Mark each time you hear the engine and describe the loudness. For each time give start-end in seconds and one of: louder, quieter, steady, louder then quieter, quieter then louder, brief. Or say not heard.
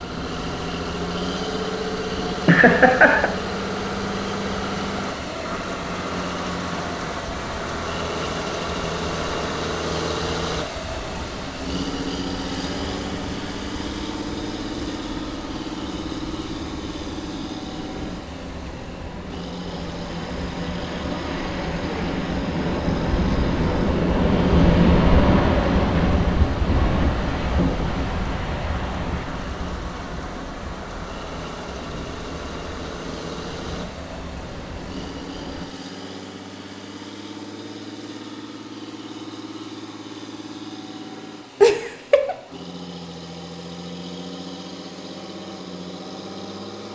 0.0-46.9 quieter.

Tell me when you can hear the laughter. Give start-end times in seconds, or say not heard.
2.5-3.3, 41.6-42.4.